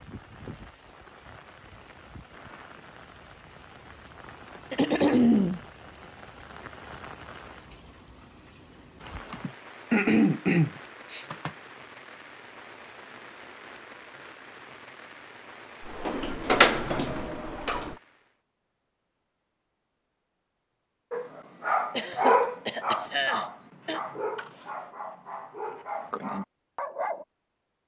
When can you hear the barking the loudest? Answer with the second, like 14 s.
22 s.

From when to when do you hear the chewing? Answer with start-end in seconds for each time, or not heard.
not heard.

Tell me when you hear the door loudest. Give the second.
17 s.